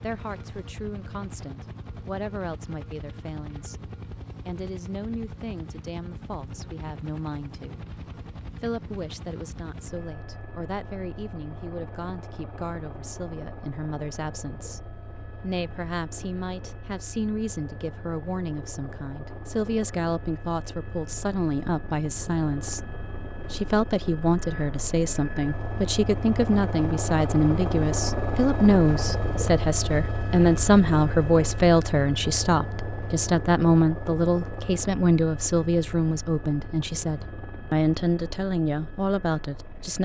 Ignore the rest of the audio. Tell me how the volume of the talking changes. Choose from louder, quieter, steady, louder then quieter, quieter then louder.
louder.